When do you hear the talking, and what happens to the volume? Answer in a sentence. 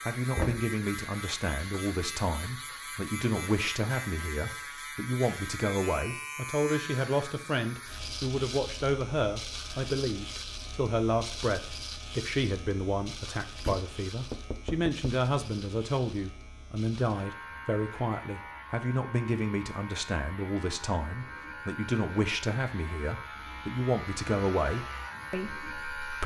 You can hear the talking from 0.1 to 26.2 s, at a steady volume.